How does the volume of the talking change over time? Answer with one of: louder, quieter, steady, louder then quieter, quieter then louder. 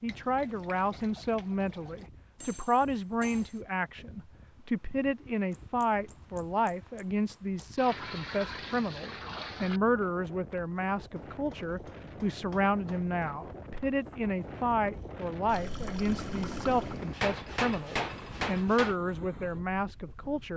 steady.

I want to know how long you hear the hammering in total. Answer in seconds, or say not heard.
8 s.